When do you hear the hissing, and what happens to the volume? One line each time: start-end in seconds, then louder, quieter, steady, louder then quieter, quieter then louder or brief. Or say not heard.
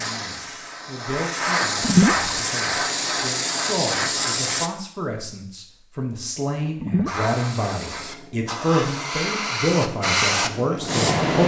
0.0-4.7 louder
7.0-11.4 louder.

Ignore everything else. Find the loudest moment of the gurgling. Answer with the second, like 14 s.
2 s.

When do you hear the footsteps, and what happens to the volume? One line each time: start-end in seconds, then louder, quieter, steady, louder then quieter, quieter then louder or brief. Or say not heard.
not heard.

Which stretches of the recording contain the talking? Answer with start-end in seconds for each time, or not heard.
0.0-11.4.